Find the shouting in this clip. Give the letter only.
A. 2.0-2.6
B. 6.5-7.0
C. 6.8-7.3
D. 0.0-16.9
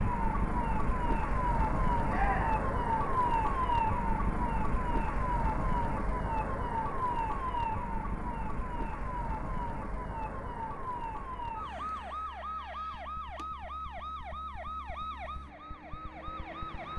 A.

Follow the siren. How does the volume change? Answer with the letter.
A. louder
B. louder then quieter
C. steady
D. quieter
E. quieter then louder
D.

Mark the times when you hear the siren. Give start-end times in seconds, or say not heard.
0.0-16.9.